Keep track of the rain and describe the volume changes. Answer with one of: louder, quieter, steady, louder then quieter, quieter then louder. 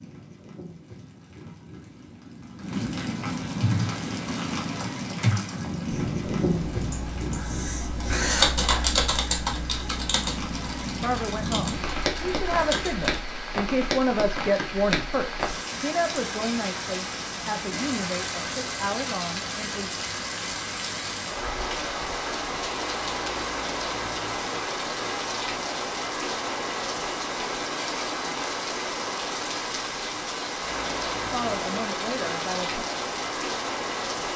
steady.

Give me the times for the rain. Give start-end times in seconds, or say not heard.
0.0-34.3.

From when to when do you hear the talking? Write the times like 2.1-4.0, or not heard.
10.8-19.9, 31.3-32.9.